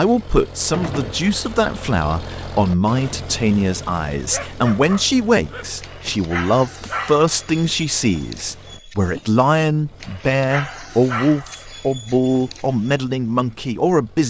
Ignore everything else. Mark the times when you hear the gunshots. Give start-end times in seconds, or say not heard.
0.7-1.2.